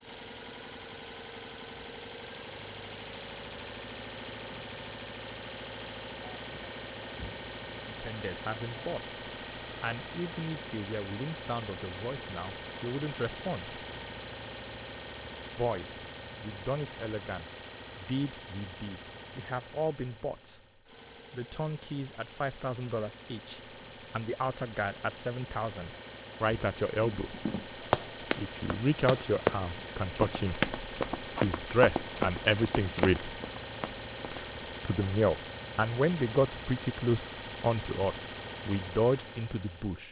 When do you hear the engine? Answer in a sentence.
You can hear the engine from 0.0 to 40.0 s.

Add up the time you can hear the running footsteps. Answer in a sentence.
The running footsteps can be heard for 7 seconds in total.